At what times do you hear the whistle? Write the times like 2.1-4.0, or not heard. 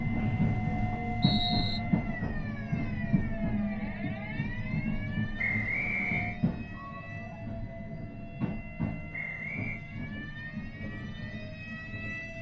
0.1-1.8, 5.3-6.4, 9.1-9.8.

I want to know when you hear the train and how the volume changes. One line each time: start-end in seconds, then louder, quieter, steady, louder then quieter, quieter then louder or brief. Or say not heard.
0.0-12.3 quieter.